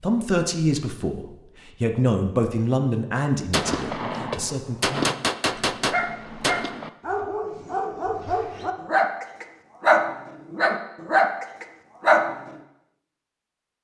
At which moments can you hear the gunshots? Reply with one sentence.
You can hear the gunshots from 3.5 to 6.9 s.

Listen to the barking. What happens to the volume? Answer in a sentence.
The volume of the barking goes up.